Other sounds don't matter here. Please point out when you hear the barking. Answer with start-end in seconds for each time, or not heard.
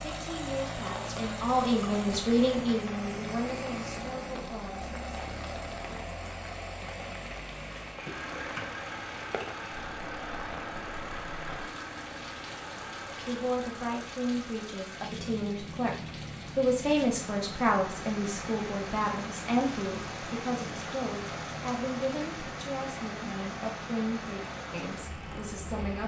not heard.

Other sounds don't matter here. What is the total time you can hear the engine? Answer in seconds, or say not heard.
26 s.